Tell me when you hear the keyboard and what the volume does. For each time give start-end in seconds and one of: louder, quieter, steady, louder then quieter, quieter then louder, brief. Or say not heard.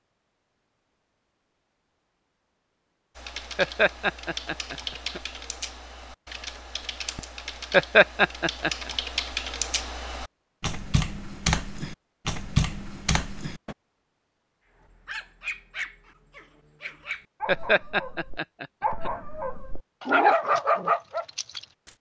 3.1-13.8 louder.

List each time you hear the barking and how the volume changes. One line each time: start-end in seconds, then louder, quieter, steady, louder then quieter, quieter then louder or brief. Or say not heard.
14.8-21.9 louder.